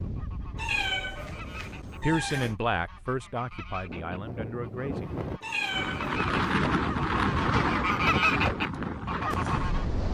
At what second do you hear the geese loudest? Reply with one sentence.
The loudest moment of the geese is at 8 seconds.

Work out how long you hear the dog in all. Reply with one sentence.
The dog can't be heard in this clip.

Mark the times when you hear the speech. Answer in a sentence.
You can hear the speech from 2.0 to 5.2 s.